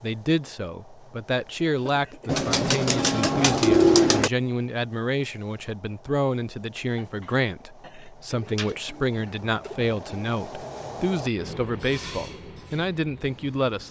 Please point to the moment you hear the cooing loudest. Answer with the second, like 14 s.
4 s.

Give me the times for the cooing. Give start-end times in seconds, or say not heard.
2.2-4.3, 8.3-10.2.